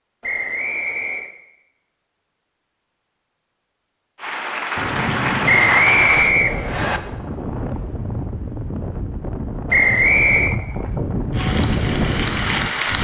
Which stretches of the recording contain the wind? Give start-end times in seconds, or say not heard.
4.8-13.0.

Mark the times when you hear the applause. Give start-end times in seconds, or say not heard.
4.2-6.3, 11.3-13.0.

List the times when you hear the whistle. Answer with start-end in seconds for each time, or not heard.
0.2-1.3, 5.5-7.0, 9.7-10.6.